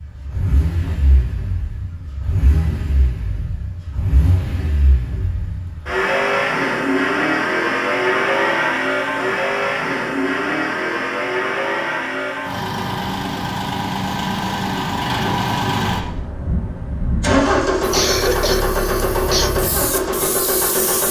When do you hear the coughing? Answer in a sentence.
You can hear the coughing from 17.9 to 19.6 s.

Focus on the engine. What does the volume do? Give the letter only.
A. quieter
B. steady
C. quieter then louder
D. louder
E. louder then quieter
D.